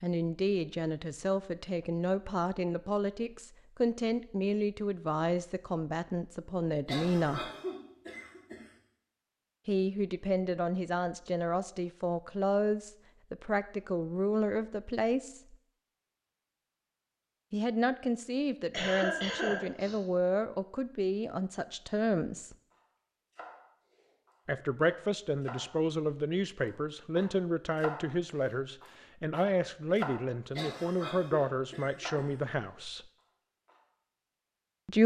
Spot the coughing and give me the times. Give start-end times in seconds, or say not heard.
6.8-8.7, 18.7-20.0, 30.6-32.3.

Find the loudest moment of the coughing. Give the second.
19 s.